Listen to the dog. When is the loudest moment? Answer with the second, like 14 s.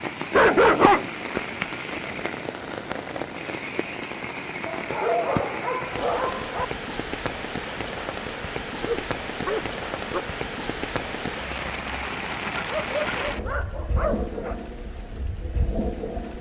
1 s.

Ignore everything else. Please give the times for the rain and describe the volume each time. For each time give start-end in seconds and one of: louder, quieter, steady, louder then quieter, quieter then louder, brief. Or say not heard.
0.0-16.3 steady.